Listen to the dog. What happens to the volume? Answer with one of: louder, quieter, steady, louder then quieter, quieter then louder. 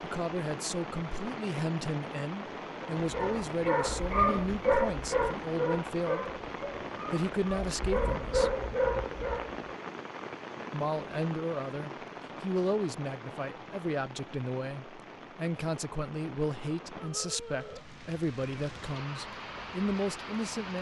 quieter then louder.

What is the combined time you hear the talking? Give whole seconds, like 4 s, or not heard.
18 s.